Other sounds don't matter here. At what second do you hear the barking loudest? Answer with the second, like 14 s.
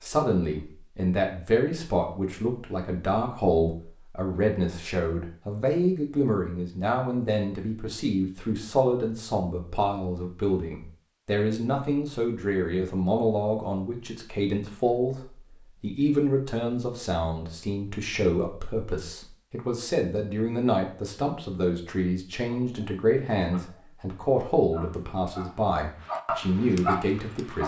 27 s.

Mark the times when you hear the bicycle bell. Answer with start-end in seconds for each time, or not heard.
not heard.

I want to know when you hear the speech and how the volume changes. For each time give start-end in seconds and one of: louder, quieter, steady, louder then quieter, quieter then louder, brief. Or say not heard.
0.0-27.6 steady.